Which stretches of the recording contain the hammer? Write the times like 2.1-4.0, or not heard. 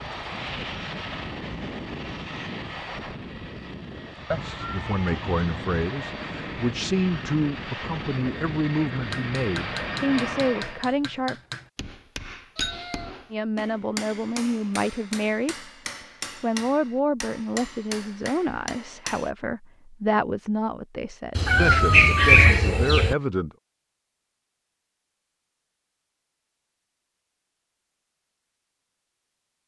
9.1-19.3.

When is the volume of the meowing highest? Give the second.
22 s.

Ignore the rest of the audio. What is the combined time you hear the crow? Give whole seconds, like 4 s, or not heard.
not heard.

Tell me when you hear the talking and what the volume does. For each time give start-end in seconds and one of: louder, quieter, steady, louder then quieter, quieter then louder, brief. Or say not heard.
4.4-11.3 steady
13.3-15.7 brief
16.4-23.5 steady.